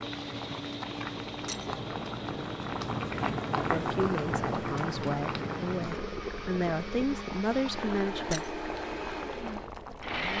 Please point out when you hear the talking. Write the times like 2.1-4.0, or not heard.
3.7-8.4.